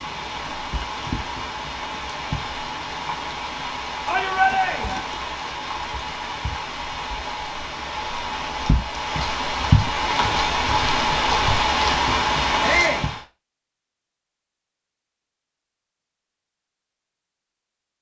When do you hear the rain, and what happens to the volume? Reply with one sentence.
You can hear the rain from 0.0 to 13.2 s, getting louder.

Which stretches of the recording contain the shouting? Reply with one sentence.
The shouting can be heard from 4.0 to 5.0 s and from 12.6 to 13.1 s.